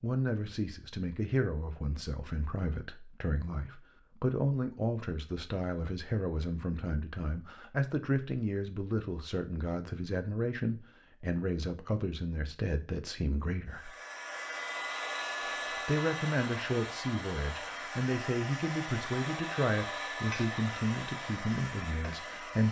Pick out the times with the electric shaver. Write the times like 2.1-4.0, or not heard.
not heard.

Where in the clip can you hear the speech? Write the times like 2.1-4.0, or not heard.
0.0-13.9, 15.7-22.6.